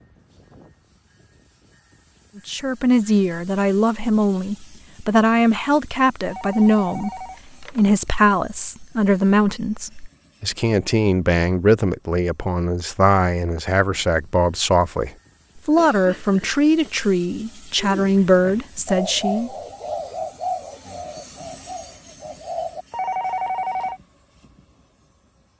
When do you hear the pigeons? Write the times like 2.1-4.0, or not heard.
17.8-22.9.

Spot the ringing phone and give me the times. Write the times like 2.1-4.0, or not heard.
6.3-7.8, 22.9-24.0.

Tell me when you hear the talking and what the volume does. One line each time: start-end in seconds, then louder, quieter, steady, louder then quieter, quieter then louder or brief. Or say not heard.
2.4-19.5 steady.